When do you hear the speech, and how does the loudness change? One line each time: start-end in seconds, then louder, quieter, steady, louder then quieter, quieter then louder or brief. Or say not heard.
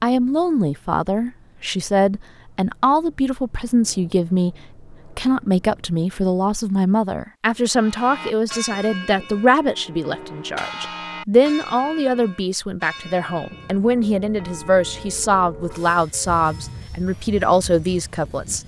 0.0-18.6 steady.